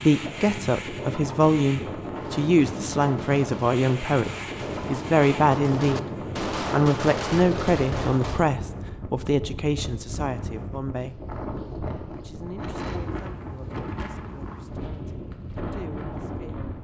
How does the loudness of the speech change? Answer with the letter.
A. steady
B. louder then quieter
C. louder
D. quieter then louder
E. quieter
E.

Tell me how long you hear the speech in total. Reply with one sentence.
You can hear the speech for 15 seconds altogether.